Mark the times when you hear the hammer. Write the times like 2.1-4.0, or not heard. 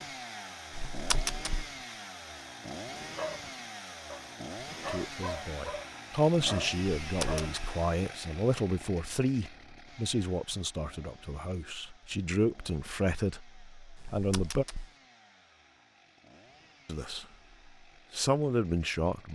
not heard.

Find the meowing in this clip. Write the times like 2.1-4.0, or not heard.
0.7-1.6, 7.0-7.8, 13.9-14.9.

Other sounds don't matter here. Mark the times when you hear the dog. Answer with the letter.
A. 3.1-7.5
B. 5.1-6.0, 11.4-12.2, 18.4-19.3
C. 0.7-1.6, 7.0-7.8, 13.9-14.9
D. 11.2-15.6
A.